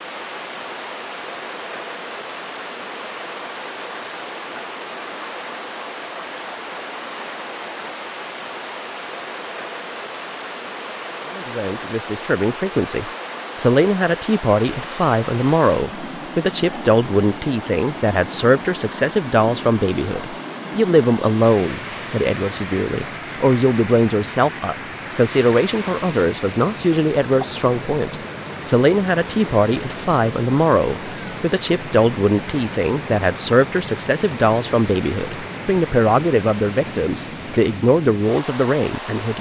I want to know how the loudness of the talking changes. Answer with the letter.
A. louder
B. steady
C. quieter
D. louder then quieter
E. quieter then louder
B.